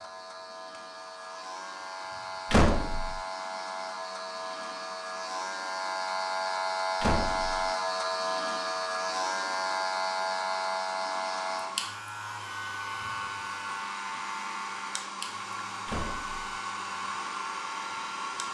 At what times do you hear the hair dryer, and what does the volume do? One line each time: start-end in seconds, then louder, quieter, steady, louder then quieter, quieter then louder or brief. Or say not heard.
0.0-18.4 louder.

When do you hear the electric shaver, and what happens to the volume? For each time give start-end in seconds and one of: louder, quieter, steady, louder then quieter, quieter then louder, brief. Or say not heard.
0.0-18.4 louder then quieter.